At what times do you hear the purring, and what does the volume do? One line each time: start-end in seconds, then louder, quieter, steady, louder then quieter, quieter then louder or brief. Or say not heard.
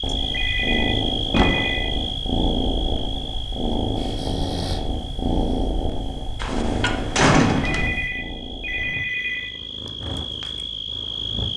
0.0-11.5 quieter.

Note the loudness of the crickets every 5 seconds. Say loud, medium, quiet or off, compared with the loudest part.
loud, medium, loud.